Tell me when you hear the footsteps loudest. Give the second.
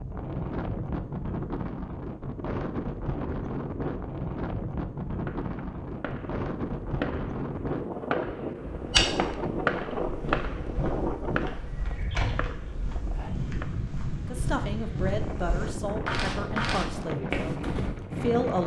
9 s.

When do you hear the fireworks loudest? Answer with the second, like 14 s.
10 s.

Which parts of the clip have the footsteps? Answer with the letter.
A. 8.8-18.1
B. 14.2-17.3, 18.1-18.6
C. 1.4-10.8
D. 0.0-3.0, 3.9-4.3
A.